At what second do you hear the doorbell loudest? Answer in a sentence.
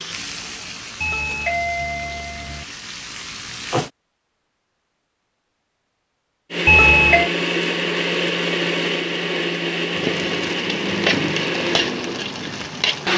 The volume of the doorbell peaks at 7 seconds.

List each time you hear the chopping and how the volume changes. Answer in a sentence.
The chopping can't be heard in this clip.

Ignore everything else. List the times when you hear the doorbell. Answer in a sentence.
The doorbell can be heard from 1.0 to 2.6 s and from 6.7 to 7.3 s.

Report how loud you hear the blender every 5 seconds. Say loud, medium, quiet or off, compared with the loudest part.
off, loud, loud.